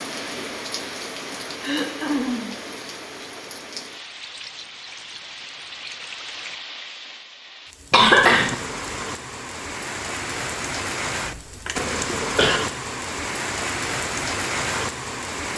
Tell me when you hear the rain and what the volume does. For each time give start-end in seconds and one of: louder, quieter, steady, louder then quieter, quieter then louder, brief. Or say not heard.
0.0-15.5 louder.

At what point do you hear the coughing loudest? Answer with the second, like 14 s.
8 s.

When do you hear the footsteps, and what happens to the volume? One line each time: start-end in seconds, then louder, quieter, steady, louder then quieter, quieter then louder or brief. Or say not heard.
not heard.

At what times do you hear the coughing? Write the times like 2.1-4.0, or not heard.
1.6-2.5, 7.9-8.6, 11.2-12.6.